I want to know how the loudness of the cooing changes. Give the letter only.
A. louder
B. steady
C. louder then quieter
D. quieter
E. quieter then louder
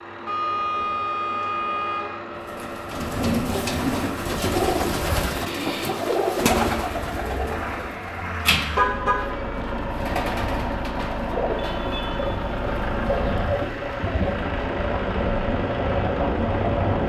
D.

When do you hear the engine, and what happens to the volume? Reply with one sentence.
The engine can be heard from 0.0 to 17.0 s, getting louder.